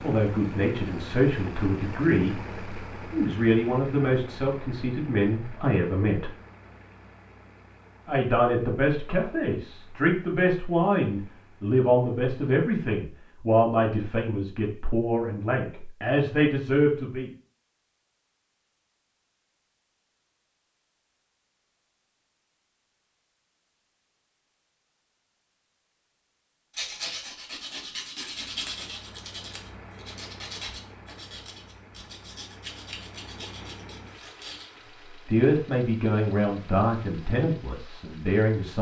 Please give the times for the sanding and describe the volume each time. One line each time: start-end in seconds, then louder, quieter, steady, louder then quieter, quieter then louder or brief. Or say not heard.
26.7-34.6 quieter.